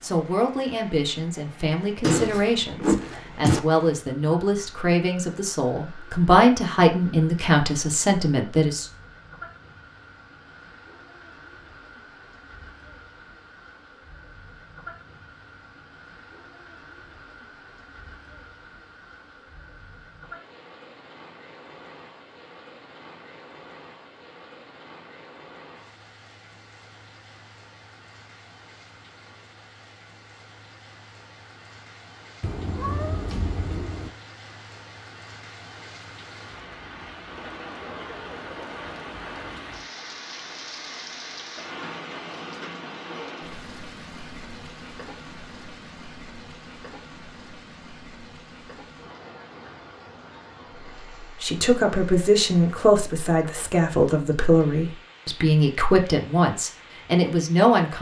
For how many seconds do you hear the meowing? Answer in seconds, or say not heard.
3 s.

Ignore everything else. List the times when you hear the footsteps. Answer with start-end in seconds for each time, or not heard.
not heard.